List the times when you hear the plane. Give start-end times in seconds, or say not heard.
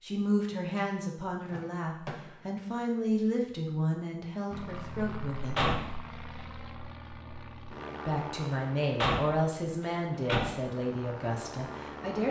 4.5-12.2.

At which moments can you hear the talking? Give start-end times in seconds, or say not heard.
0.0-5.5, 8.1-12.2.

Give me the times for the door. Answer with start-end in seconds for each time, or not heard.
1.4-2.2, 5.5-6.5, 9.0-10.6.